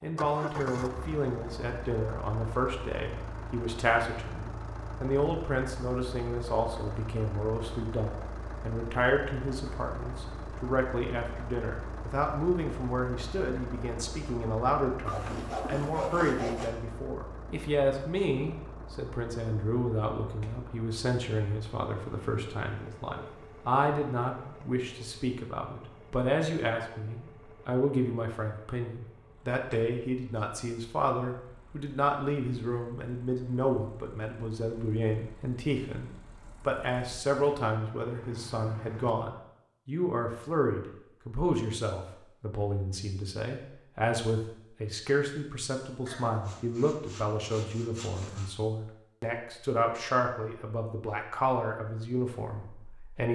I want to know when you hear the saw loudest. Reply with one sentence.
The loudest moment of the saw is at 16 seconds.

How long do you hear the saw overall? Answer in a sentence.
The saw can be heard for 4 seconds in total.